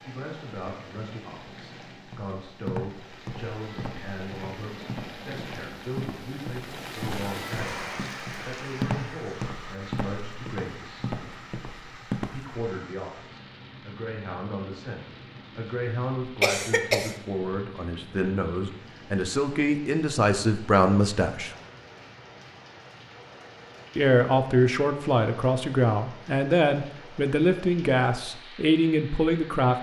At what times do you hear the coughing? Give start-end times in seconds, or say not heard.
16.4-17.1.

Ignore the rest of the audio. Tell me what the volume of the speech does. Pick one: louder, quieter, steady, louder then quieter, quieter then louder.
louder.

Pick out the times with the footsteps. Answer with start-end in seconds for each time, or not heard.
2.0-12.6.